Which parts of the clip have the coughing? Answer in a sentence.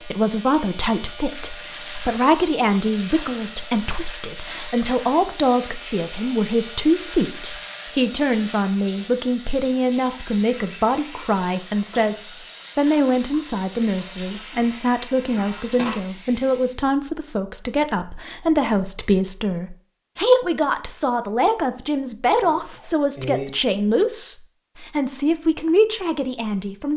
The coughing can be heard from 22.4 to 23.5 s.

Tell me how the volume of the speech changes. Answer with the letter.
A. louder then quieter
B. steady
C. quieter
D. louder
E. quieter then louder
B.